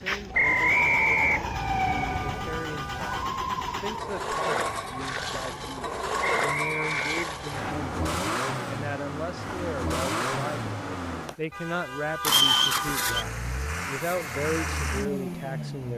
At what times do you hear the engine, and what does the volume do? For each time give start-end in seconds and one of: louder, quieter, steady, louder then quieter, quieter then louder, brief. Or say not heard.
0.0-15.9 louder.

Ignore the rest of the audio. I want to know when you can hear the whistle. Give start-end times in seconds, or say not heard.
0.3-1.5, 6.3-7.8, 12.2-13.2.